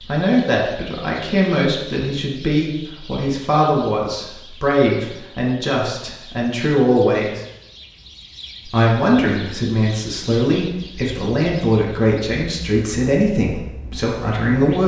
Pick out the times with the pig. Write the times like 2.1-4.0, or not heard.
not heard.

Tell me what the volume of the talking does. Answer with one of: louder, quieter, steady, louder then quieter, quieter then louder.
steady.